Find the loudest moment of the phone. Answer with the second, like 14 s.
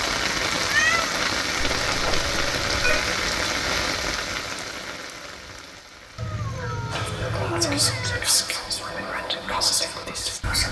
3 s.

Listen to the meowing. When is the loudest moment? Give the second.
1 s.